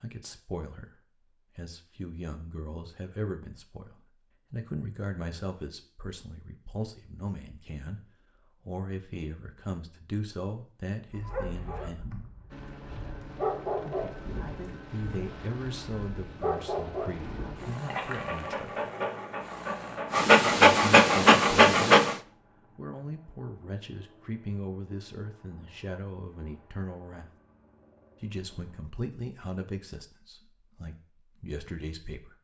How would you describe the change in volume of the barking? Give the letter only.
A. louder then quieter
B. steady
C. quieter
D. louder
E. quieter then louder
D.